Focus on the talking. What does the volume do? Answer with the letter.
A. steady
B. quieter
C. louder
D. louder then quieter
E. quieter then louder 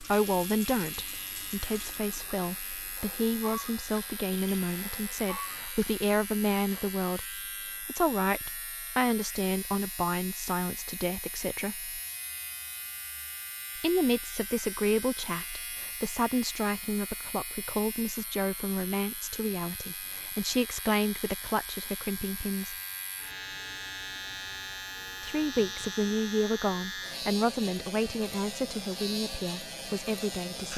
A.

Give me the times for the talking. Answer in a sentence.
The talking can be heard from 0.0 to 11.9 s, from 13.8 to 22.8 s and from 25.2 to 30.7 s.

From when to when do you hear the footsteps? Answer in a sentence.
You can't hear the footsteps here.